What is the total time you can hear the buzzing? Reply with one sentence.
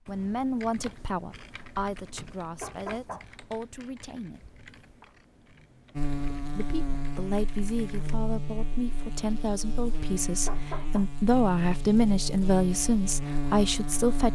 You can hear the buzzing for 8 seconds altogether.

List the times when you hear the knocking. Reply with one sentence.
The knocking can be heard from 2.6 to 3.2 s and from 10.4 to 11.1 s.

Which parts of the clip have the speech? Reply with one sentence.
The speech can be heard from 0.1 to 4.6 s and from 6.5 to 14.3 s.